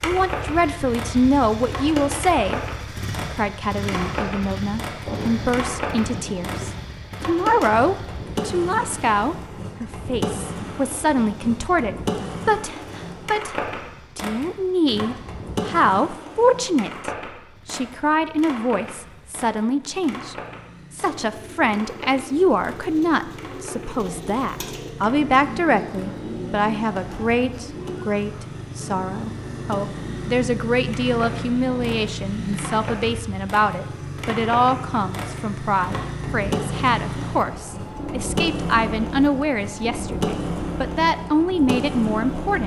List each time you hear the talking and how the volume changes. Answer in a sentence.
You can hear the talking briefly from 0.0 to 2.6 s; and from 3.3 to 42.6 s, at a steady volume.